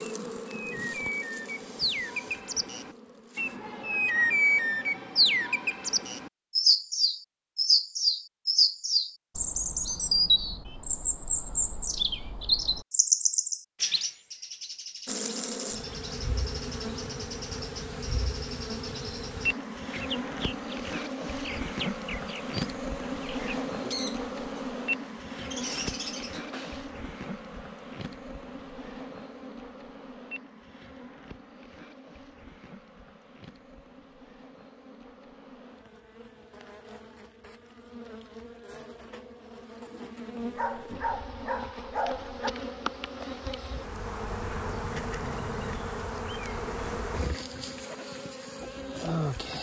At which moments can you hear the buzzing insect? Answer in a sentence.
You can hear the buzzing insect from 0.0 to 3.6 s and from 15.1 to 49.5 s.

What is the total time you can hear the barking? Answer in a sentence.
You can hear the barking for 2 seconds altogether.